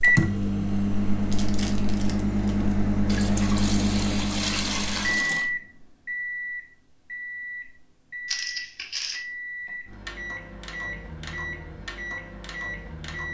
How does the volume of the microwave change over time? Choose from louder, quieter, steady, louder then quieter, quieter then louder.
quieter.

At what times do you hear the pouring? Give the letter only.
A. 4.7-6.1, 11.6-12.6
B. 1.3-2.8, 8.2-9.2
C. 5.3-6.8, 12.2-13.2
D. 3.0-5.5
D.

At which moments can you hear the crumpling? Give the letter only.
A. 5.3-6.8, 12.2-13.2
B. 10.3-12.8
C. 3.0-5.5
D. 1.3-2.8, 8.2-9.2
D.